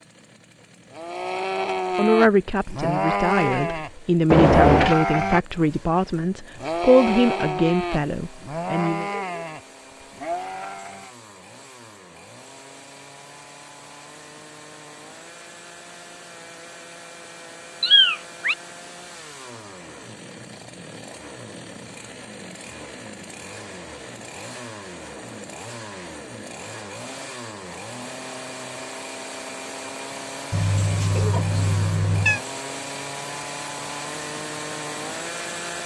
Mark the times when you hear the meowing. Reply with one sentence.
The meowing can be heard from 4.3 to 5.0 s, from 17.8 to 18.6 s and from 30.5 to 32.4 s.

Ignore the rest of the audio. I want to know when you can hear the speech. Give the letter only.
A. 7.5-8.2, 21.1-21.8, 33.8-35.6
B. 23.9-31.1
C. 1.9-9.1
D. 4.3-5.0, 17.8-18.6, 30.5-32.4
C.